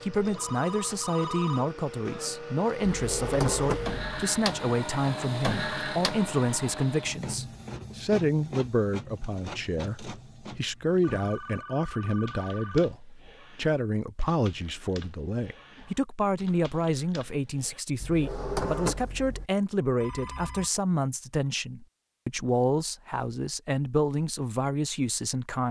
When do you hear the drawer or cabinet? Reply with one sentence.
The drawer or cabinet can be heard from 2.9 to 4.0 s and from 18.0 to 19.4 s.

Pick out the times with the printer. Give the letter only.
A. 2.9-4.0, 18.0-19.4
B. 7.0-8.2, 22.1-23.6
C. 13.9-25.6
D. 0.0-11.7
D.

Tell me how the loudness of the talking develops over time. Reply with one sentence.
The volume of the talking stays about the same.